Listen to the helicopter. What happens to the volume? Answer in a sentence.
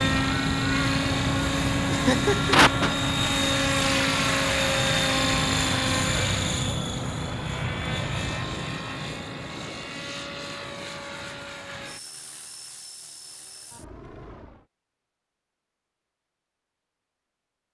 The loudness of the helicopter goes down.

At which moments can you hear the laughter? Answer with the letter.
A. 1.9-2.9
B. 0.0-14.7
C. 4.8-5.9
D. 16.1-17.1
A.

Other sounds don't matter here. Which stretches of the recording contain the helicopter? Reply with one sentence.
The helicopter can be heard from 0.0 to 14.7 s.